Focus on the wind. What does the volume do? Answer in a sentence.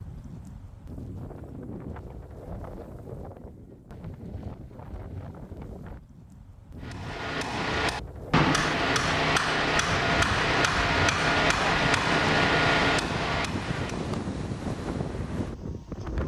The volume of the wind goes up.